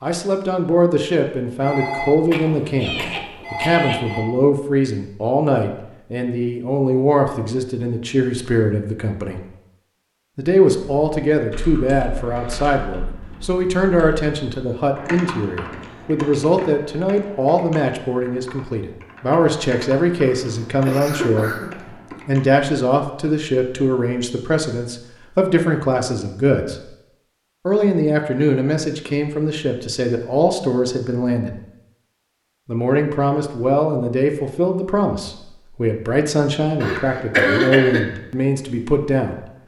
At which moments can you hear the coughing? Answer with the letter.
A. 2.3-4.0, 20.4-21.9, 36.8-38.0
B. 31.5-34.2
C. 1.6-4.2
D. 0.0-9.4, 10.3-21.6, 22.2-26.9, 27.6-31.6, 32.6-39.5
A.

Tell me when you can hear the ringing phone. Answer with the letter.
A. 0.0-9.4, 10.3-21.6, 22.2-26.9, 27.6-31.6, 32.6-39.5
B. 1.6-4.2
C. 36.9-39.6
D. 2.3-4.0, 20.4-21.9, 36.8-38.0
B.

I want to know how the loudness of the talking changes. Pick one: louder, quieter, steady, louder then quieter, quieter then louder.
steady.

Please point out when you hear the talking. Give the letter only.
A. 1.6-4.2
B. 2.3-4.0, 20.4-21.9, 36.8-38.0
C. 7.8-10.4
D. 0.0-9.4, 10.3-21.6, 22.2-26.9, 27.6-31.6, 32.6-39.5
D.